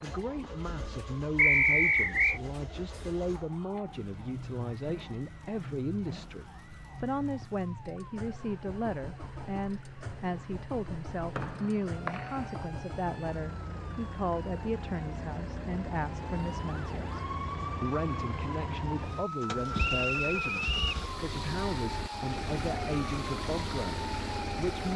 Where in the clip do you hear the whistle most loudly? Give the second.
2 s.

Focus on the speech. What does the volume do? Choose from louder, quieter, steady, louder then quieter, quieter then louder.
steady.